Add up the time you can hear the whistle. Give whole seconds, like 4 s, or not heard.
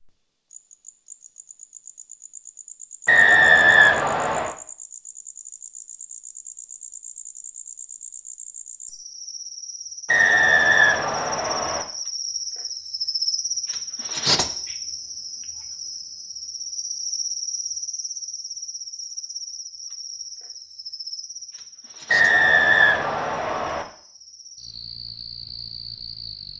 5 s.